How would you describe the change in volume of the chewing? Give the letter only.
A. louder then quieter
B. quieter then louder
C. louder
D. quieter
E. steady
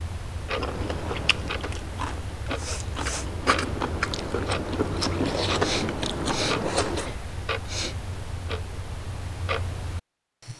C.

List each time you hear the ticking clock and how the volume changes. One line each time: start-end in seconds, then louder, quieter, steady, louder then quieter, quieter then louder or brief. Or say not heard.
0.0-10.5 steady.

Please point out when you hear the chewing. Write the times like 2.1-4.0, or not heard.
0.6-7.2.